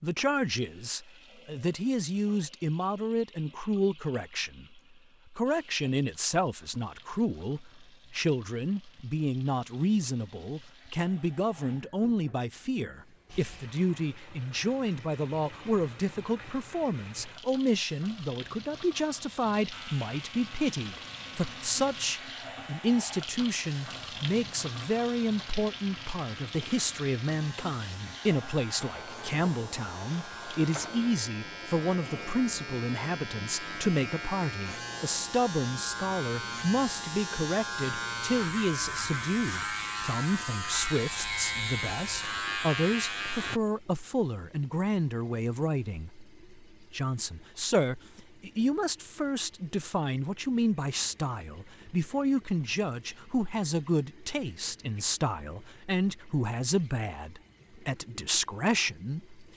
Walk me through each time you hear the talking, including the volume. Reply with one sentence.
The talking can be heard from 0.0 to 59.4 s, at a steady volume.